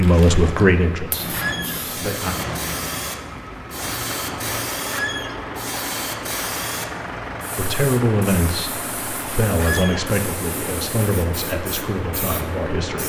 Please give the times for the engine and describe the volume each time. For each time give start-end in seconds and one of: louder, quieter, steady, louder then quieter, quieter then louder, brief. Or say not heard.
0.0-13.0 steady.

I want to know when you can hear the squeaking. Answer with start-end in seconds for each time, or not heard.
1.3-1.8, 4.9-5.4, 9.6-10.1.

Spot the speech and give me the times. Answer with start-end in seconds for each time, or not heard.
0.0-2.4, 7.5-13.0.